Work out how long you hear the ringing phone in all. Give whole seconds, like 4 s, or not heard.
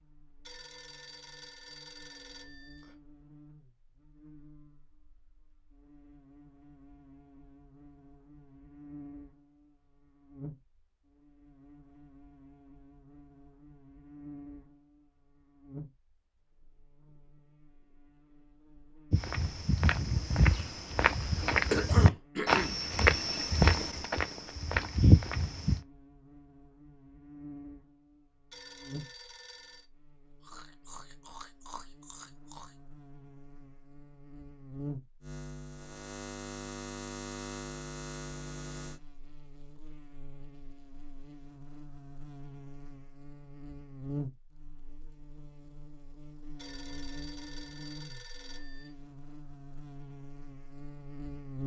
6 s.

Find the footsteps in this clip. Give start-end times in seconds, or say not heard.
19.1-25.8.